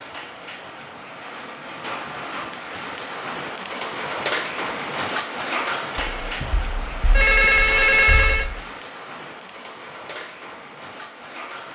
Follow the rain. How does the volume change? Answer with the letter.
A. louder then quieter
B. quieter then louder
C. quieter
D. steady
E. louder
A.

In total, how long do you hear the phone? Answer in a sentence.
You can hear the phone for 3 seconds altogether.